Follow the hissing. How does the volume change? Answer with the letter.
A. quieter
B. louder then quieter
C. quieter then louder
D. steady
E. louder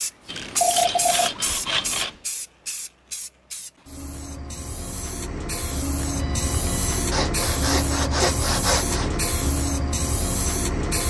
C.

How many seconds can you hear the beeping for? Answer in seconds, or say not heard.
2 s.